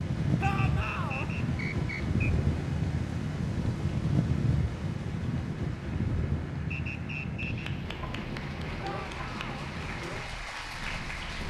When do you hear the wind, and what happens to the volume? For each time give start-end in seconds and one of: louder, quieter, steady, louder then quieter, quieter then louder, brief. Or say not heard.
0.0-11.4 quieter.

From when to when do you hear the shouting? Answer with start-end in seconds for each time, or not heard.
0.4-1.3, 8.8-9.7.